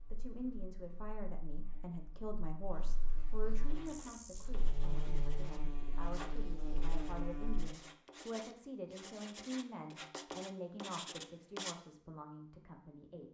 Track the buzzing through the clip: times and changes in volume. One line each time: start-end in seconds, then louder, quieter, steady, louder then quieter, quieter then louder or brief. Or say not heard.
0.0-7.7 louder.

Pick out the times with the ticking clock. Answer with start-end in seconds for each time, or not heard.
not heard.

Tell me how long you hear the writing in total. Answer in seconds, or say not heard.
8 s.